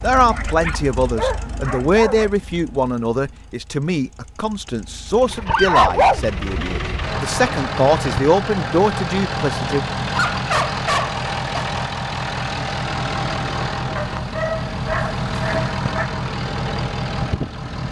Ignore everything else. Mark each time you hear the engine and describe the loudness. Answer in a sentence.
You can hear the engine from 0.0 to 17.8 s, getting louder.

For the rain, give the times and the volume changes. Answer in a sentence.
You can't hear the rain here.